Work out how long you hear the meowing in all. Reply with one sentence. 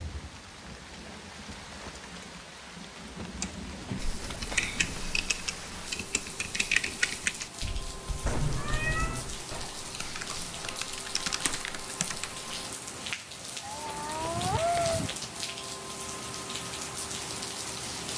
The meowing can be heard for 3 seconds in total.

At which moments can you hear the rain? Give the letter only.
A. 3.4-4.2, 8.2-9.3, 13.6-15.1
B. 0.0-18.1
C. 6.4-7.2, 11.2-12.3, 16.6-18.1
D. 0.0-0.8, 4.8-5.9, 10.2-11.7
B.